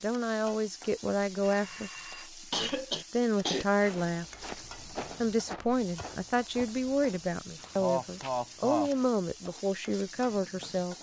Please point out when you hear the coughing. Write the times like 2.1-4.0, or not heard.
2.5-3.6, 7.8-8.9.